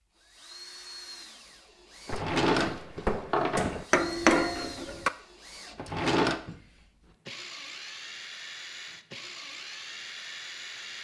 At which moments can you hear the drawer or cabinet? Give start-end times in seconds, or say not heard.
2.0-3.9, 5.8-6.4.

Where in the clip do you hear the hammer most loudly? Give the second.
4 s.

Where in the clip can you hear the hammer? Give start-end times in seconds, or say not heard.
2.1-5.1.